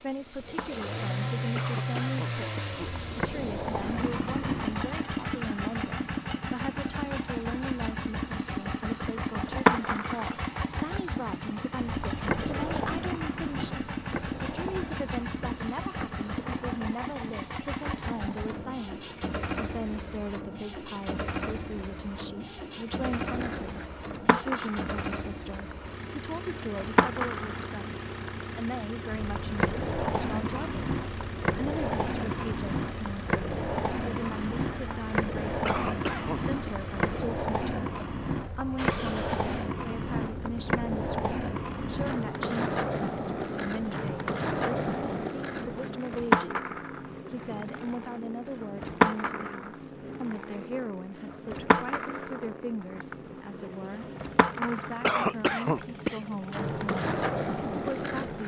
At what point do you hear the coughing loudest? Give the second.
55 s.